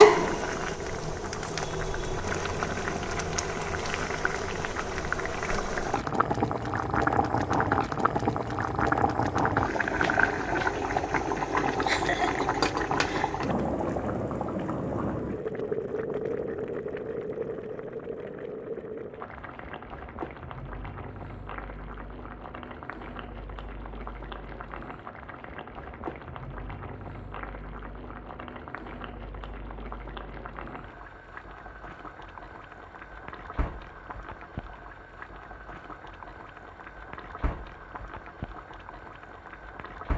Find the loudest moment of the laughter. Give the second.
12 s.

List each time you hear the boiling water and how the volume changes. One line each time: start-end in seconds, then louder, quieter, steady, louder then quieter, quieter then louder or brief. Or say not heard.
0.0-40.1 quieter.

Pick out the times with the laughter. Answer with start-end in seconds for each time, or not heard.
11.3-13.4.